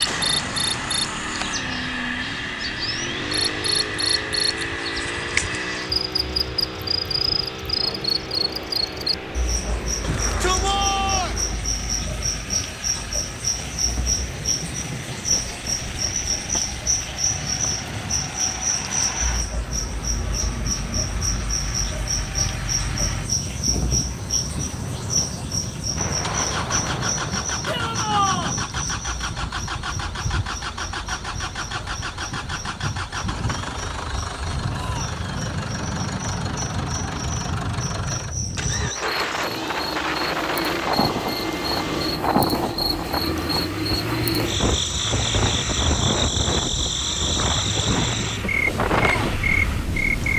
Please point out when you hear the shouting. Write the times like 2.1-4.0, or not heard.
10.0-11.4, 27.6-28.6, 34.6-35.2.